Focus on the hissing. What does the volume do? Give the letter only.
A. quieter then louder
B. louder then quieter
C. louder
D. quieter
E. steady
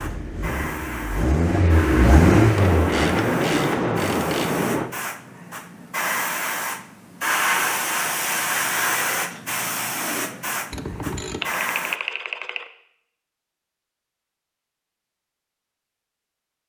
B.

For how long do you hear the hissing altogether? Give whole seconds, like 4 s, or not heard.
12 s.